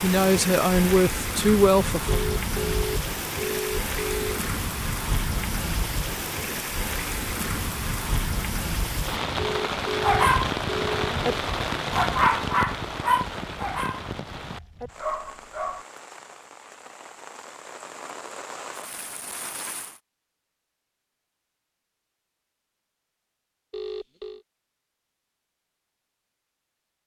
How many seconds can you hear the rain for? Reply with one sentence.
The rain can be heard for 20 seconds in total.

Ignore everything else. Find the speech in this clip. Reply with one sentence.
The speech can be heard from 0.0 to 2.2 s.